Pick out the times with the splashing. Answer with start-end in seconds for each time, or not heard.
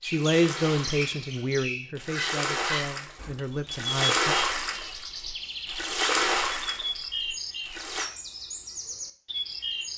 0.0-8.1.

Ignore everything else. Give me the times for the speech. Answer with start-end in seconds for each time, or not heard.
0.0-4.3.